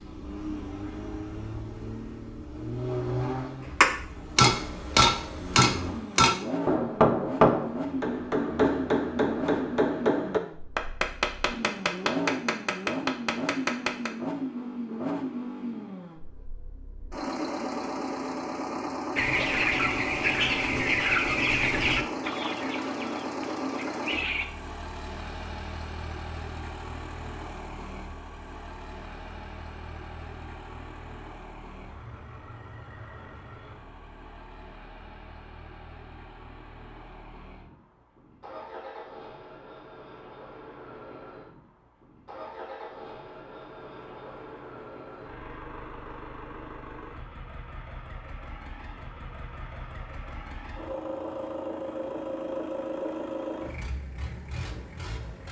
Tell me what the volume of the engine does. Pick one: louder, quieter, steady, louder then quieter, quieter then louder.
quieter then louder.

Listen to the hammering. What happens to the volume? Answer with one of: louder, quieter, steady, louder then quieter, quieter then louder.
quieter.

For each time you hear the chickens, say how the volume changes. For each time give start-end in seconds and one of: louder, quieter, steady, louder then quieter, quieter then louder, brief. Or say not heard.
19.1-24.5 quieter.